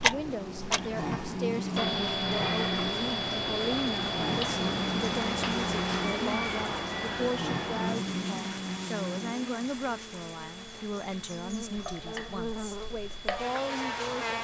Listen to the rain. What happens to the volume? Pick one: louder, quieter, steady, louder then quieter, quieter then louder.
louder then quieter.